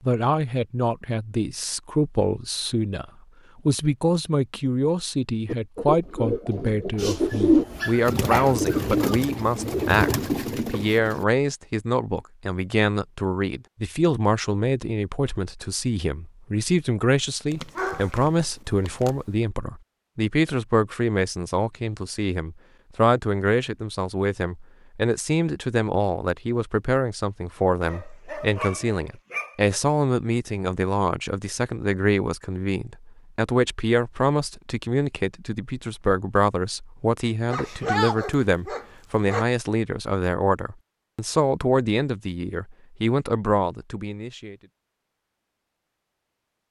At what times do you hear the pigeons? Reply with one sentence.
You can hear the pigeons from 5.5 to 11.2 s.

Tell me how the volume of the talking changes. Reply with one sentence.
The loudness of the talking stays about the same.